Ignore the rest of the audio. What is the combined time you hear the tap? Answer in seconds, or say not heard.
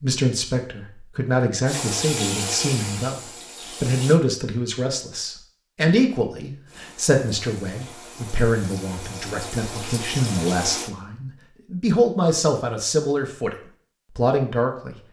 7 s.